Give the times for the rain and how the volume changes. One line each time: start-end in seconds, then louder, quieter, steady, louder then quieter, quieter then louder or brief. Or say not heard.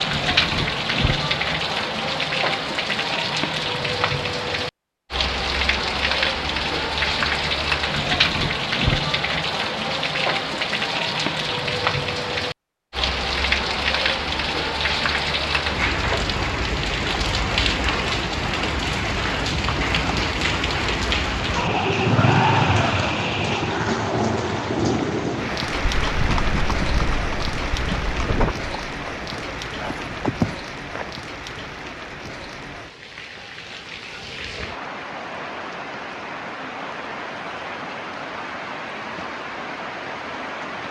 0.0-40.8 quieter.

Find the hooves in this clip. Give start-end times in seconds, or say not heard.
25.7-31.1.